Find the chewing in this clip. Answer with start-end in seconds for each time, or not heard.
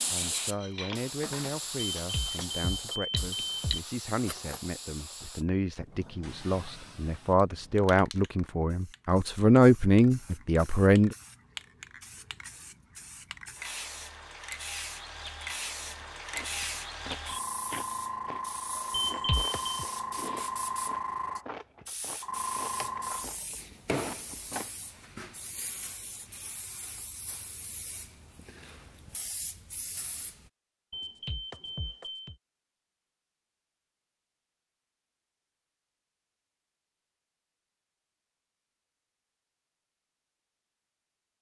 15.8-24.7.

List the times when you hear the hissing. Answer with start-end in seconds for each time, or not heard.
0.0-30.5.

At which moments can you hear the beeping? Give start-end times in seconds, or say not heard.
1.9-3.8, 18.9-19.9, 30.9-32.4.